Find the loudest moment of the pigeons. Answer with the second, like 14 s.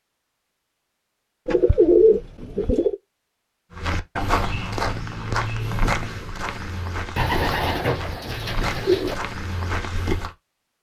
2 s.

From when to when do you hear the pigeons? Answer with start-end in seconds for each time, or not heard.
1.4-3.0, 7.2-9.2.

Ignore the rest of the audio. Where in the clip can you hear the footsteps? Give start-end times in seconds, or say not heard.
3.7-10.3.